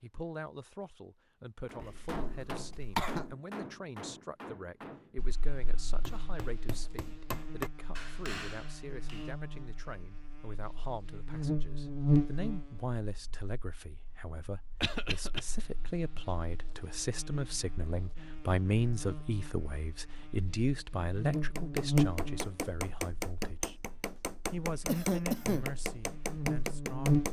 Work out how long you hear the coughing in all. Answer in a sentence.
You can hear the coughing for 3 seconds altogether.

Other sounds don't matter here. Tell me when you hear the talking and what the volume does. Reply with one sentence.
The talking can be heard from 0.0 to 23.8 s, getting louder; and briefly from 24.5 to 27.2 s.